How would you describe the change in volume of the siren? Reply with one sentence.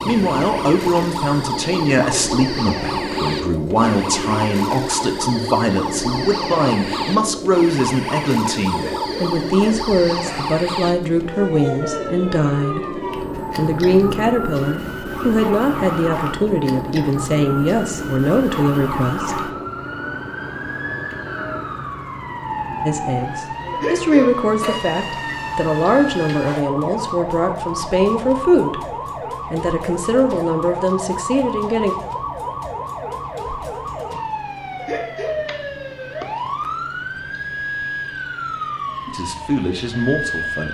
The loudness of the siren stays about the same.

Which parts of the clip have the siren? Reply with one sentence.
You can hear the siren from 0.0 to 40.6 s.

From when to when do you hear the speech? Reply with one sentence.
You can hear the speech from 0.0 to 19.6 s, from 22.9 to 28.9 s, from 29.5 to 31.9 s and from 39.0 to 40.6 s.